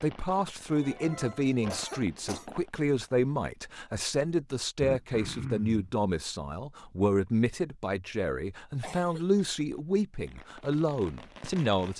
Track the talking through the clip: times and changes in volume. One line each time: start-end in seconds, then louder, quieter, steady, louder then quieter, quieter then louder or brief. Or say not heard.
0.0-11.9 steady.